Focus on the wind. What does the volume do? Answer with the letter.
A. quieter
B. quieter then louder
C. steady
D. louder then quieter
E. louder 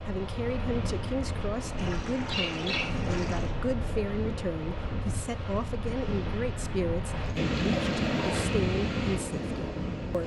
E.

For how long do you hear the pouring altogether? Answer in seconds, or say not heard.
3 s.